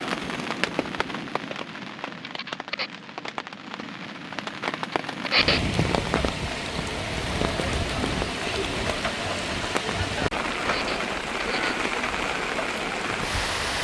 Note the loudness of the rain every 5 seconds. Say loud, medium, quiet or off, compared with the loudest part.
medium, loud, loud.